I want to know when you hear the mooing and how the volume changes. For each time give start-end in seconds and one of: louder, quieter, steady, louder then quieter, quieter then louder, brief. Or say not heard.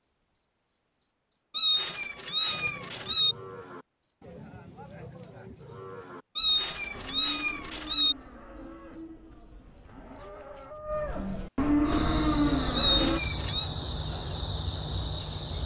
2.5-13.2 louder.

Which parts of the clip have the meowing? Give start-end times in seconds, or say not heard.
1.5-3.4, 6.3-8.2, 12.8-13.7.